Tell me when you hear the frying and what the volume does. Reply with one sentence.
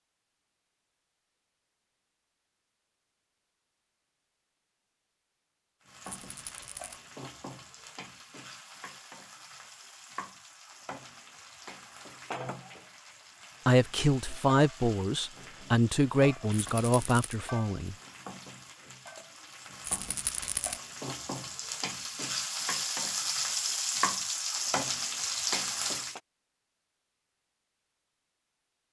The frying can be heard from 5.8 to 26.2 s, getting louder.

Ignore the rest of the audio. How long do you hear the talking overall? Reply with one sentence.
The talking can be heard for 4 seconds in total.